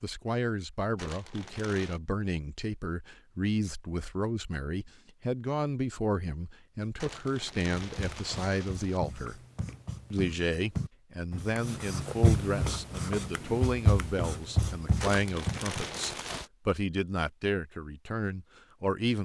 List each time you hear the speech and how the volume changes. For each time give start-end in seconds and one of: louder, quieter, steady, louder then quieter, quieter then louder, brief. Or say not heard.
0.0-9.4 steady
10.1-19.1 steady.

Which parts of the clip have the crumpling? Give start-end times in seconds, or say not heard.
0.9-2.0, 7.0-9.0, 15.0-16.5.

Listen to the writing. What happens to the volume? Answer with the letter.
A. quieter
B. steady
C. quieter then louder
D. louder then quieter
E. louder
E.